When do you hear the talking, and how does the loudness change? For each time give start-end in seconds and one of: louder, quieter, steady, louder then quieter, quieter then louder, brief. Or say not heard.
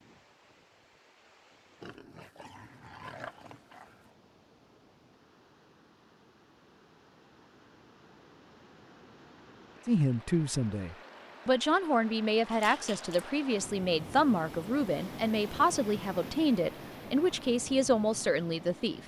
9.8-19.0 steady.